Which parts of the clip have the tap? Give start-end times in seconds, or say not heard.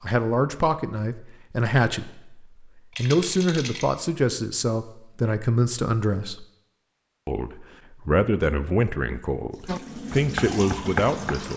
9.5-11.5.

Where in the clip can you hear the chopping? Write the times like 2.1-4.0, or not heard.
9.7-11.5.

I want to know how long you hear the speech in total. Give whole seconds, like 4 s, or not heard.
11 s.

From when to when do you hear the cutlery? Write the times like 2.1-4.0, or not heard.
not heard.